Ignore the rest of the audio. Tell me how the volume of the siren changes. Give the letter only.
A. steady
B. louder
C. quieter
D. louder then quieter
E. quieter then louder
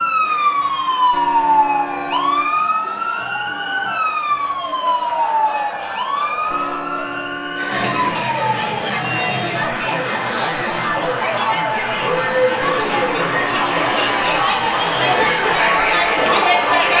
C.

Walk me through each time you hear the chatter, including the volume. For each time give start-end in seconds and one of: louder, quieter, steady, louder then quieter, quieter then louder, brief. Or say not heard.
0.1-16.9 louder.